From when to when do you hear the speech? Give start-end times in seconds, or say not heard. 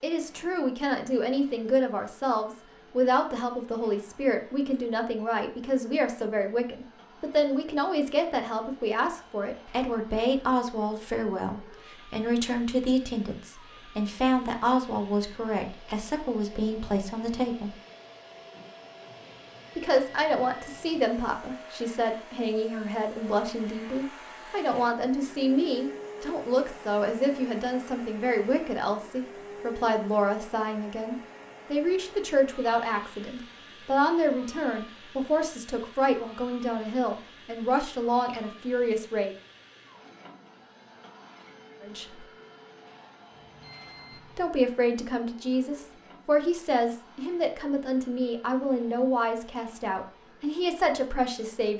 0.0-17.8, 19.8-39.4, 41.8-42.2, 44.4-51.7.